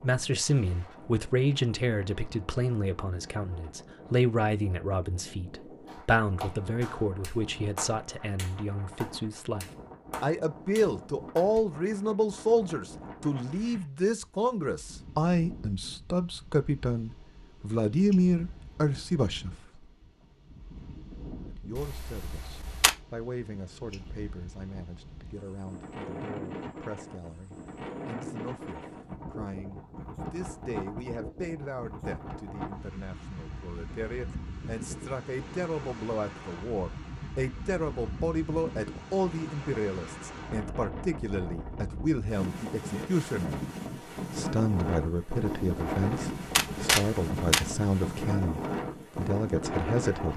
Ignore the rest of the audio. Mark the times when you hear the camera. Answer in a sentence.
The camera can be heard from 21.8 to 22.9 s and from 45.5 to 47.8 s.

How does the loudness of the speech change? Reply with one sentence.
The loudness of the speech goes down, then up.